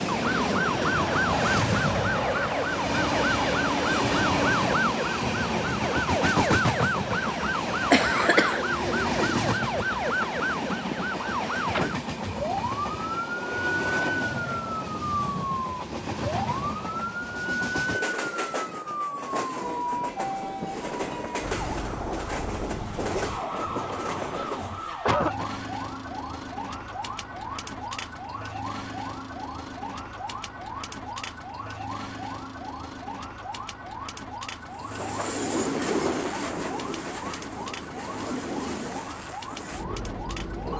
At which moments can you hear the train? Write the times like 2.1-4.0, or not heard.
0.0-24.9, 34.5-40.7.